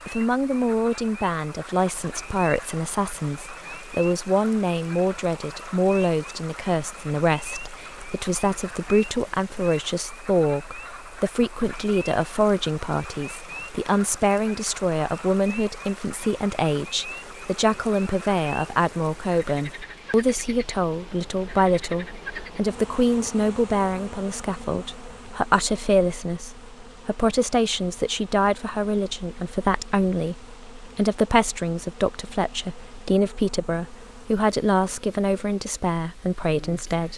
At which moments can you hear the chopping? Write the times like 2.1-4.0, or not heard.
not heard.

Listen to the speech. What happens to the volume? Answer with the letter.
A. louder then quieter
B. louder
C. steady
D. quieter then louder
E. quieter
C.